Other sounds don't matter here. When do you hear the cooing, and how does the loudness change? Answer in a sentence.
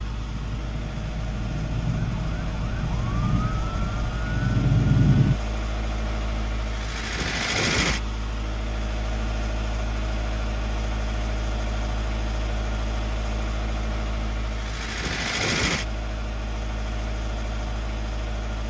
The cooing can't be heard in this clip.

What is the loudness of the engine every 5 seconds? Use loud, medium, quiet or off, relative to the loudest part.
medium, loud, loud, loud.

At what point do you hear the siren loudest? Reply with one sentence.
The volume of the siren peaks at 5 seconds.